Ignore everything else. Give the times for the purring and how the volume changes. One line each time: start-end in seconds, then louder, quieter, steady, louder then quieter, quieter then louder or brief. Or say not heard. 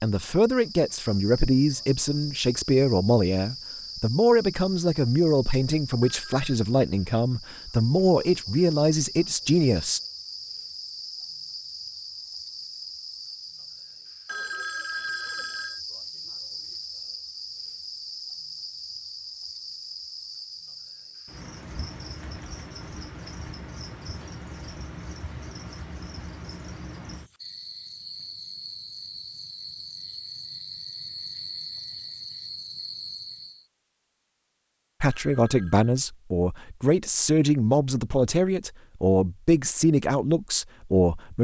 not heard.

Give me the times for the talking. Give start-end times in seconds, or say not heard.
0.0-10.0, 35.0-41.3.